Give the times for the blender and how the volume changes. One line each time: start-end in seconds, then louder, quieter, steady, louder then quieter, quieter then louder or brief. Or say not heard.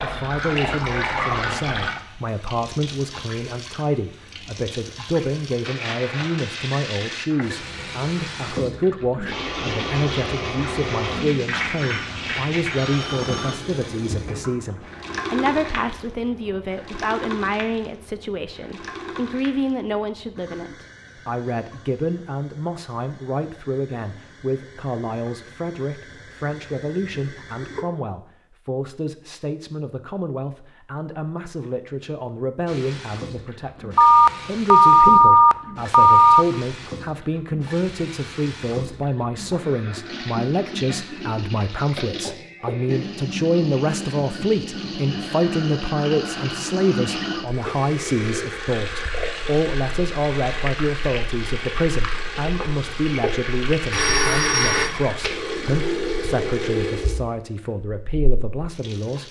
not heard.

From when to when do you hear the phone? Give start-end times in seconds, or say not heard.
11.8-13.6, 34.0-36.5, 53.9-55.0.